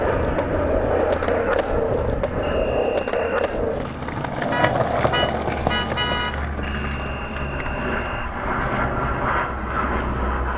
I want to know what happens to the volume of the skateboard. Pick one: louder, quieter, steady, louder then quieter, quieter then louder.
quieter.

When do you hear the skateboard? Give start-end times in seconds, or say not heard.
0.0-10.3.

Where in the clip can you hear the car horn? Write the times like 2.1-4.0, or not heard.
4.5-6.3.